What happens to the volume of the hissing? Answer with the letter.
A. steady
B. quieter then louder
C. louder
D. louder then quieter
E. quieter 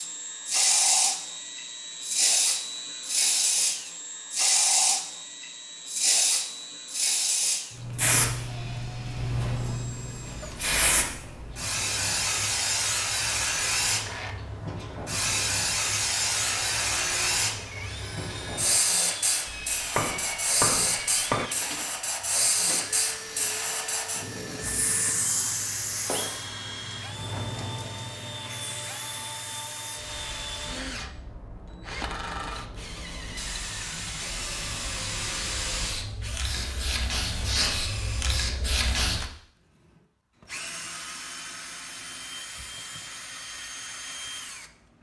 E.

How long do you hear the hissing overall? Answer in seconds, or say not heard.
39 s.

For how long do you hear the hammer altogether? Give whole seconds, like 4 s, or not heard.
2 s.